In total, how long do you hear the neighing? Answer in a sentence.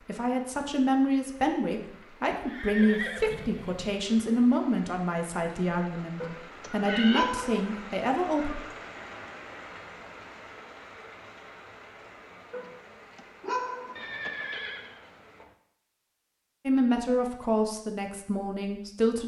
The neighing can be heard for 4 seconds in total.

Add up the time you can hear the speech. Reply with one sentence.
You can hear the speech for 11 seconds altogether.